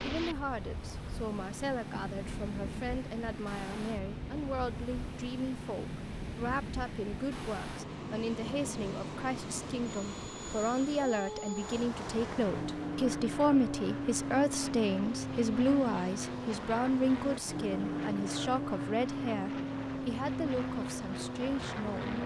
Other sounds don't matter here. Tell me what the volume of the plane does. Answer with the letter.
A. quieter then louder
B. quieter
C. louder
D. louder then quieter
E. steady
C.